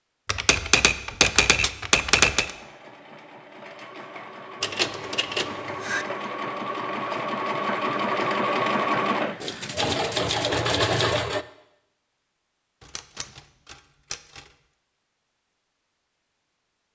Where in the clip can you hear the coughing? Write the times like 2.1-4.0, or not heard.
not heard.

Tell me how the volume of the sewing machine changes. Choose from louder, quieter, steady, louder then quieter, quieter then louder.
louder.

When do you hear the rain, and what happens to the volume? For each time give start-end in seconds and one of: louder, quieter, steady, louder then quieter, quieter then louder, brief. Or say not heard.
not heard.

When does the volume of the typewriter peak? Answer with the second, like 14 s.
2 s.